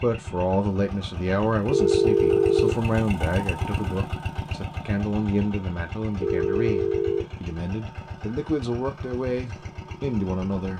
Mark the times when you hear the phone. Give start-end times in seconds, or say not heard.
1.7-2.8, 6.2-7.2.